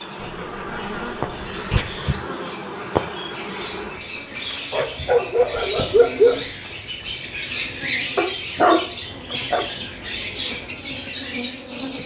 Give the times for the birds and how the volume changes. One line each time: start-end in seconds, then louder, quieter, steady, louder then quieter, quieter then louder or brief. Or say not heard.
0.0-12.0 louder.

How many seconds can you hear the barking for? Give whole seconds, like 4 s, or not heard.
5 s.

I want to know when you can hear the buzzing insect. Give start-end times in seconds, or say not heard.
0.0-12.0.